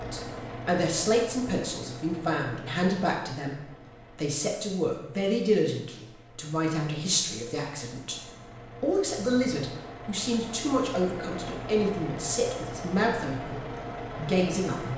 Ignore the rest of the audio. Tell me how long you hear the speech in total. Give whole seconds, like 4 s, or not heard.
15 s.